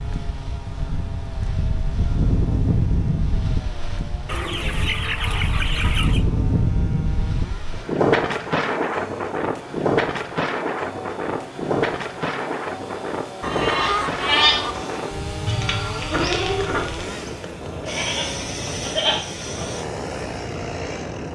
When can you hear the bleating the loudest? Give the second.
14 s.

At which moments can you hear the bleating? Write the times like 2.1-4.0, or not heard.
13.4-19.7.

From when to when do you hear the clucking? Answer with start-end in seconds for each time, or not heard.
4.2-6.2, 13.4-14.8.